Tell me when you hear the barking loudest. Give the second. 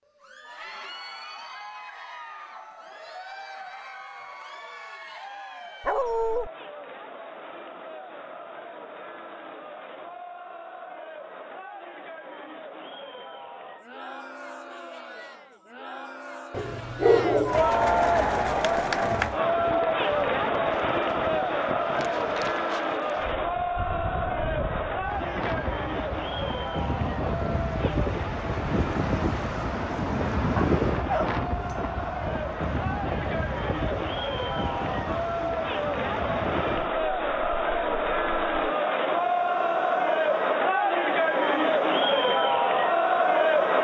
17 s.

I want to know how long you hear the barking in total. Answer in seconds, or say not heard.
3 s.